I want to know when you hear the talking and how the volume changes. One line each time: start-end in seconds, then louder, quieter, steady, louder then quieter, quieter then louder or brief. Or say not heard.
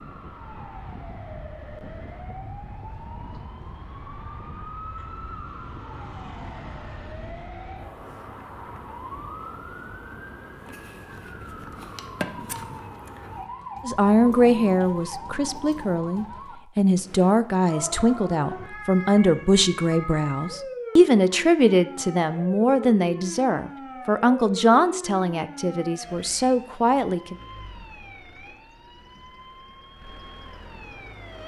13.8-27.4 steady.